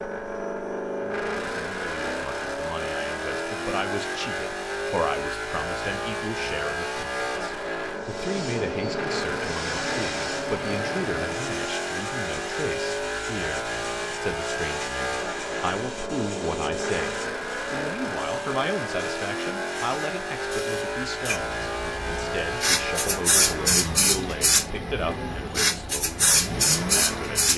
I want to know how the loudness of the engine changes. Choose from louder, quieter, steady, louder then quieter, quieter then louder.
steady.